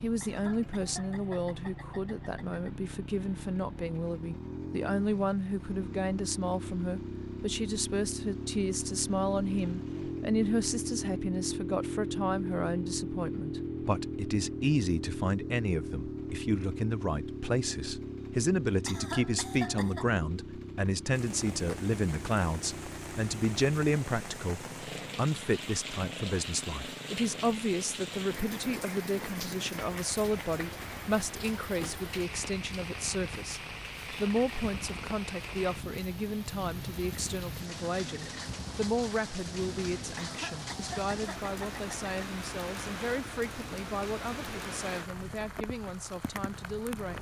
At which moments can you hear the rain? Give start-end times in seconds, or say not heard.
21.1-47.1.